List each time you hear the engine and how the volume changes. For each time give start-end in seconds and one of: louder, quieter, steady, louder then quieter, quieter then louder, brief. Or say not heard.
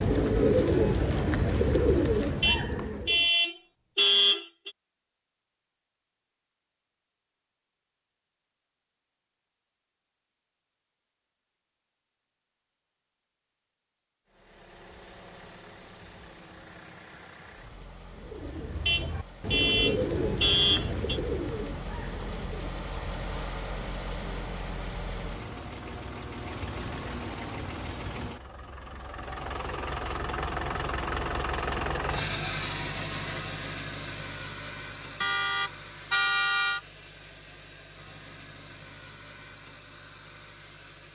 14.3-41.0 louder then quieter.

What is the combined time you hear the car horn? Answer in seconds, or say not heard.
6 s.